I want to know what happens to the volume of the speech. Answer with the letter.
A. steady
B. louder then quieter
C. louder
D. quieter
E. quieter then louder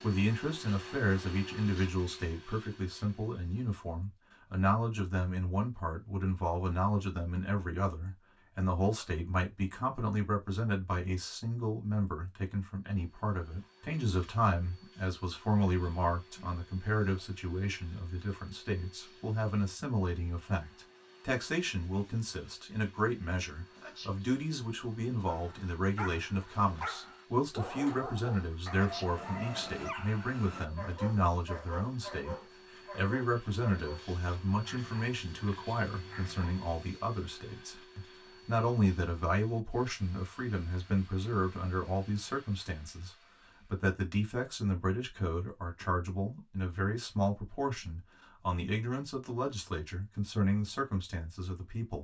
A.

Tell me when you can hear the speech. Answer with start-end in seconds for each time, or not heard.
0.0-51.9.